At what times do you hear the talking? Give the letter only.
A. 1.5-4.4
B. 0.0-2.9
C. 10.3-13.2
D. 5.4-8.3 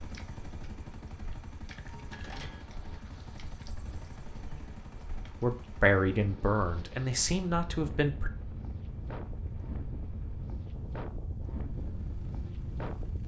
D.